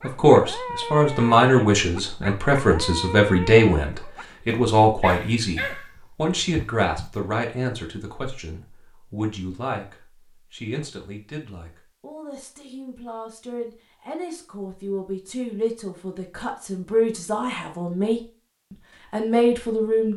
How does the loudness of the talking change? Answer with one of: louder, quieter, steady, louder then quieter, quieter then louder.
quieter then louder.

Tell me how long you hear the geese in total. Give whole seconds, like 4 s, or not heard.
not heard.